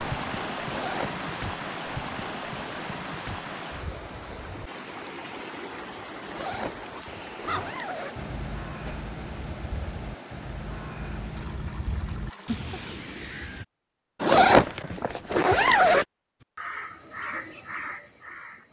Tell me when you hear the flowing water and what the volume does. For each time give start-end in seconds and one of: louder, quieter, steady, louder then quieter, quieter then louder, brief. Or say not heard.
0.0-13.0 quieter.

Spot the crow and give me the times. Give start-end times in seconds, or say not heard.
7.4-13.7, 16.4-18.6.